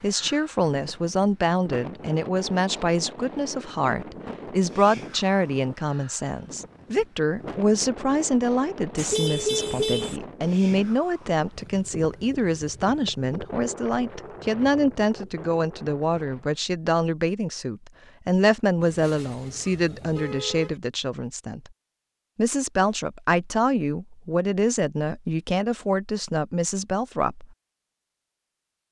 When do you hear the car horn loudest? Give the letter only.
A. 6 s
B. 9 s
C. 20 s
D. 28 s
B.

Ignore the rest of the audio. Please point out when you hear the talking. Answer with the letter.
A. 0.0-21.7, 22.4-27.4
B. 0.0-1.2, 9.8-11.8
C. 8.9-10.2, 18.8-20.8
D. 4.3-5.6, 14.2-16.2
A.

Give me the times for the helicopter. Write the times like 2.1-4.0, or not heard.
not heard.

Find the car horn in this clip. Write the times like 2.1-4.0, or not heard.
8.9-10.2, 18.8-20.8.